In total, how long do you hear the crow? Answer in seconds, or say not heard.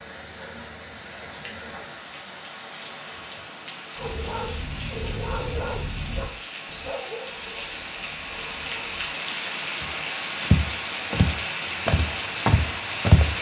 not heard.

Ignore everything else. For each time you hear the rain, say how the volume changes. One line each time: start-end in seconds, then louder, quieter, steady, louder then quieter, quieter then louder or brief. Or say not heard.
0.0-13.3 louder.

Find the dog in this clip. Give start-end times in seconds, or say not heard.
4.0-9.1.